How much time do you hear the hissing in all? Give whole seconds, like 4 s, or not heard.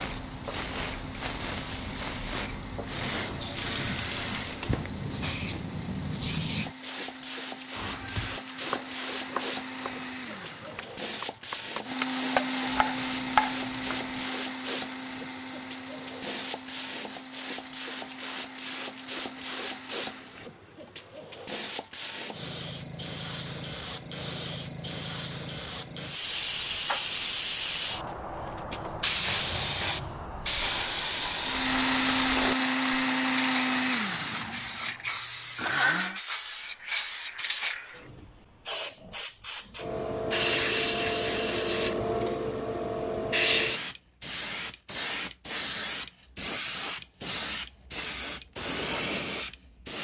50 s.